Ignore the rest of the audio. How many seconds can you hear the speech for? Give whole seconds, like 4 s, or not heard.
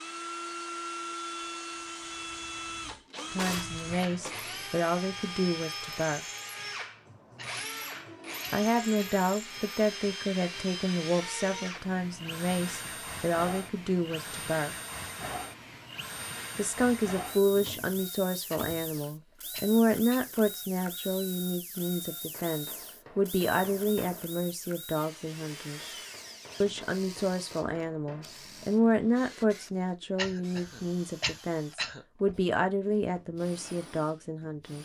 27 s.